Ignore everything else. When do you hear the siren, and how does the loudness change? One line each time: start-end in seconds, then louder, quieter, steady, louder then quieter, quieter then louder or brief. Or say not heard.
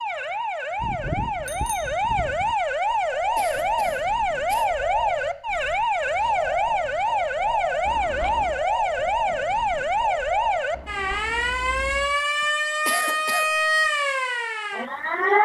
0.0-15.4 steady.